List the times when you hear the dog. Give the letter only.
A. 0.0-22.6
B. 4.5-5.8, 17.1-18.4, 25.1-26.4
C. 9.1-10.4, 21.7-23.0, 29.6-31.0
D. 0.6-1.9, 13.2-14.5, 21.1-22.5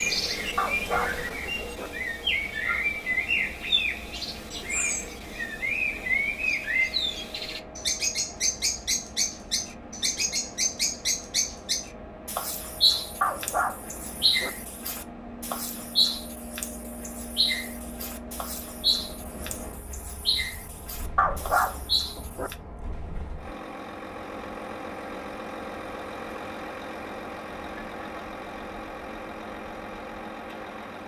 D.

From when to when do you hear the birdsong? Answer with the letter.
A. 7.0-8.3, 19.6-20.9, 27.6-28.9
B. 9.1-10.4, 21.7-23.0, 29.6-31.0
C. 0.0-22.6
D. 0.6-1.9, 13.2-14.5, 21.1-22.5
C.